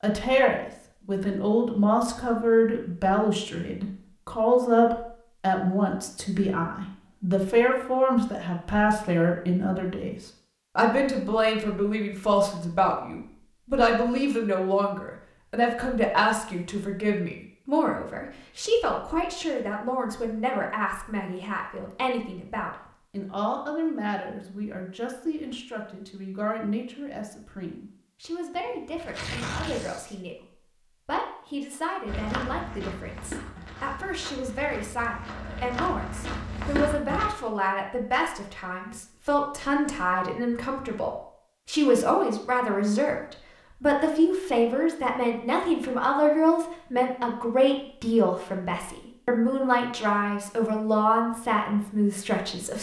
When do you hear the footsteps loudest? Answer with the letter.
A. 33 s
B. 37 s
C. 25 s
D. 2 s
B.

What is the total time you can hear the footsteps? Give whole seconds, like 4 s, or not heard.
5 s.